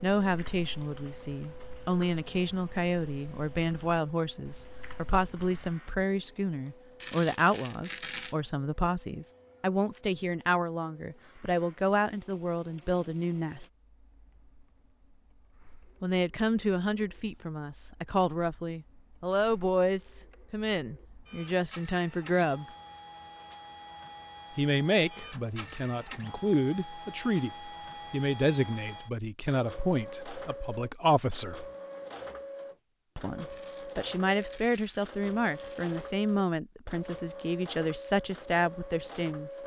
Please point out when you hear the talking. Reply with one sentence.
You can hear the talking from 0.0 to 13.7 s, from 16.0 to 22.6 s, from 24.6 to 31.6 s and from 33.1 to 39.6 s.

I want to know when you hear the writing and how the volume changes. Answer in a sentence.
You can't hear the writing here.